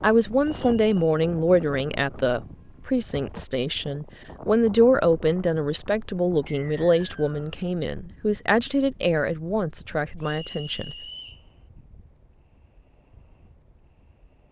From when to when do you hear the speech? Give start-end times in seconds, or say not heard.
0.0-10.9.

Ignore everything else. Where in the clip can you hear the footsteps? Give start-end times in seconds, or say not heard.
not heard.